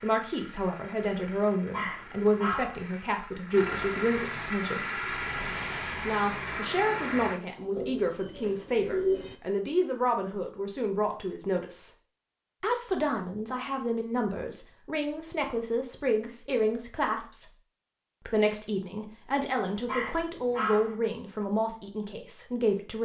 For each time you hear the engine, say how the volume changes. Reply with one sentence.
The engine can be heard from 0.0 to 7.3 s, getting louder.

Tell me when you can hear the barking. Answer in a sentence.
You can hear the barking from 1.7 to 2.8 s and from 19.9 to 20.9 s.